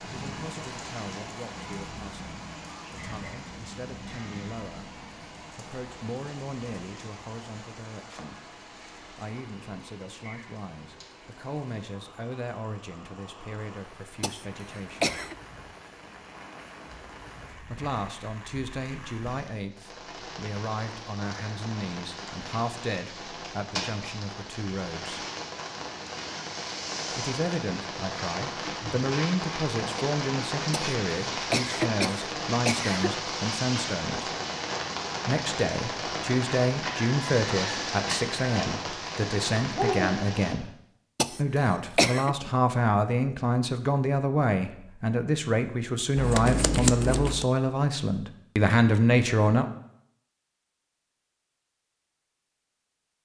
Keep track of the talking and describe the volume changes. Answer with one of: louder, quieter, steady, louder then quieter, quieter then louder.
louder.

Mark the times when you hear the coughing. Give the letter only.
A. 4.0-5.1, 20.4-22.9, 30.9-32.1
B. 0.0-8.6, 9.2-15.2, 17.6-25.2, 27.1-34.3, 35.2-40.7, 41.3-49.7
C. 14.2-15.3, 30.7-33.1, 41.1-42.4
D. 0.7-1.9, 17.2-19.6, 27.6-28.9
C.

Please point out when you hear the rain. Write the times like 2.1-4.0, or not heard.
0.0-40.5.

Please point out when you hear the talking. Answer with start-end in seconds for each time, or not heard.
0.0-8.6, 9.2-15.2, 17.6-25.2, 27.1-34.3, 35.2-40.7, 41.3-49.7.